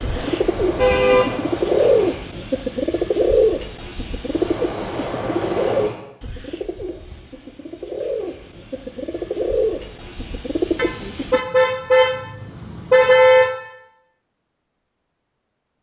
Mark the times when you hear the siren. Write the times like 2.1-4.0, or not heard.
not heard.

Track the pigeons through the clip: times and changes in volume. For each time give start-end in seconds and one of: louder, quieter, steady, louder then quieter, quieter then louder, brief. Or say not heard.
0.0-11.4 quieter then louder.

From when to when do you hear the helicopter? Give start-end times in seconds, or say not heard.
0.0-2.2, 4.2-6.0.